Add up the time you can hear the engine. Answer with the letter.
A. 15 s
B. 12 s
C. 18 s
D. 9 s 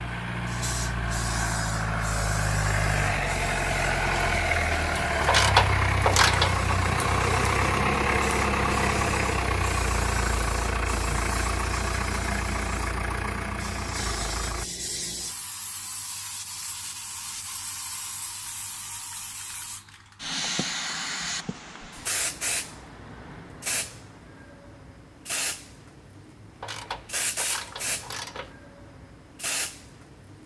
A.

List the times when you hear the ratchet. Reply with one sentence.
You can hear the ratchet from 5.2 to 6.6 s and from 26.6 to 28.6 s.